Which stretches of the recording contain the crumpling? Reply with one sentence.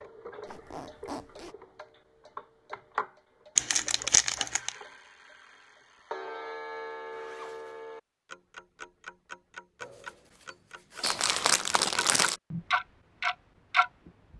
The crumpling can be heard from 3.5 to 4.8 s and from 11.0 to 12.4 s.